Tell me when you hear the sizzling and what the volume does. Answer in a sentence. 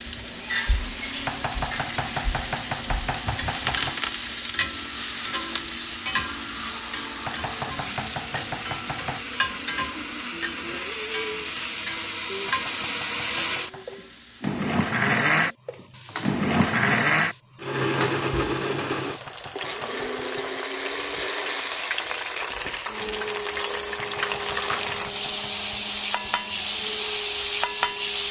You can hear the sizzling from 0.0 to 28.2 s, getting quieter then louder.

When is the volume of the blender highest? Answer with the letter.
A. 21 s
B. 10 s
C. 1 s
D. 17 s
D.